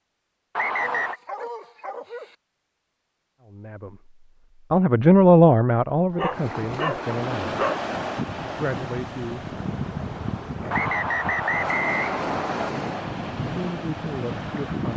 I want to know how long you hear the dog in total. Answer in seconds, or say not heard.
4 s.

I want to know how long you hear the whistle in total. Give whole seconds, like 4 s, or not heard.
3 s.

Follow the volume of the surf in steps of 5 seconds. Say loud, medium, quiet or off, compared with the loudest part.
off, loud, loud.